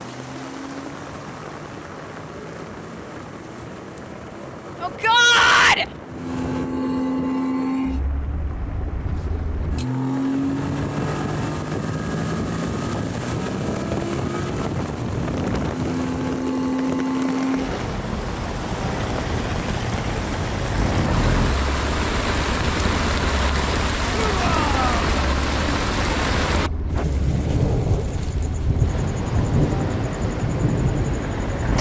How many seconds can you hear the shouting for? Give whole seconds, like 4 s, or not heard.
2 s.